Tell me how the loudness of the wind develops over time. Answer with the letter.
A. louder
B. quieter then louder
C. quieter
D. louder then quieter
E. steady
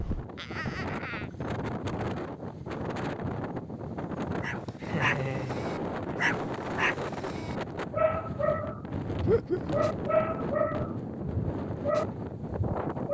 E.